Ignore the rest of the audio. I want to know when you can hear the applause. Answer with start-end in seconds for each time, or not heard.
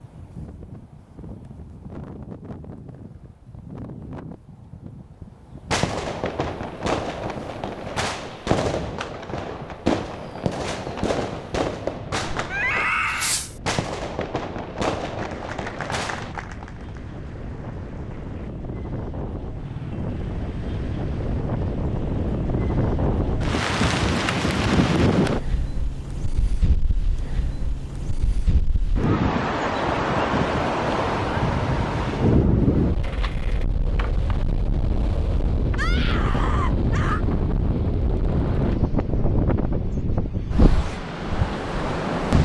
15.2-18.5.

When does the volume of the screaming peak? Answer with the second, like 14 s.
13 s.